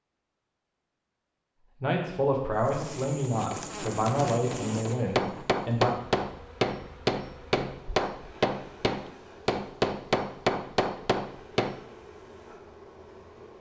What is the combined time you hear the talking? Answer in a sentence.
The talking can be heard for 4 seconds in total.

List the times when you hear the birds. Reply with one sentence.
You can't hear the birds here.